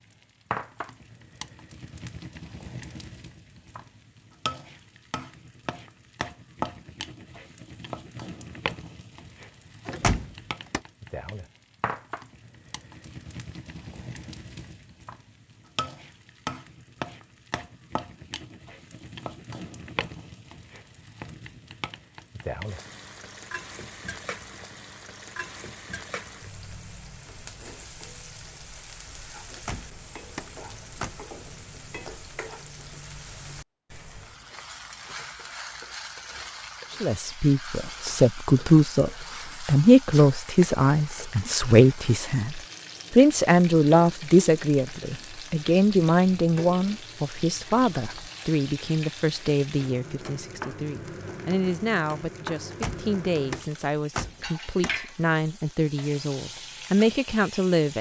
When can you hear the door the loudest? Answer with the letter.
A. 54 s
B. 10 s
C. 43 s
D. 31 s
B.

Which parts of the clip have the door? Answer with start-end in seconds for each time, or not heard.
9.8-10.8, 29.5-31.1, 52.6-55.1.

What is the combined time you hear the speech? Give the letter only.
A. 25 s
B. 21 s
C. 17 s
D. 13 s
B.